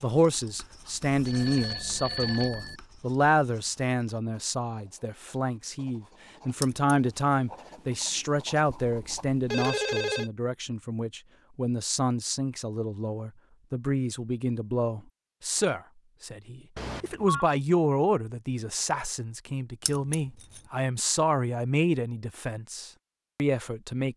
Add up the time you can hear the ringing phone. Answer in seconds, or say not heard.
4 s.